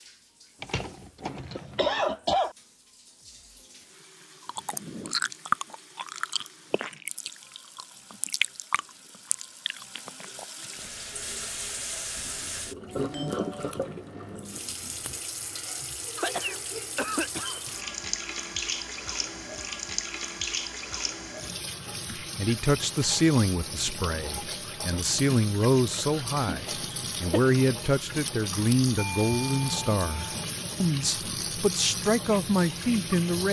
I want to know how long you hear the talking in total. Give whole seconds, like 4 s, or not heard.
11 s.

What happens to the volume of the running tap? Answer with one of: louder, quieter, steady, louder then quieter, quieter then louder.
louder.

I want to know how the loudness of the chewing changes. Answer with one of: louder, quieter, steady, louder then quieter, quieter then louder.
quieter.